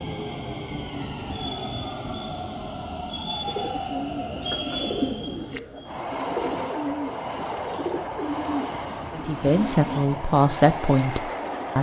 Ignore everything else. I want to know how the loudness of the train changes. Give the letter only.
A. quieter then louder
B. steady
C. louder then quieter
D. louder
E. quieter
B.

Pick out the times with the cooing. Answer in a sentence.
You can hear the cooing from 3.4 to 9.9 s.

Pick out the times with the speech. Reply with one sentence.
You can hear the speech from 9.1 to 11.7 s.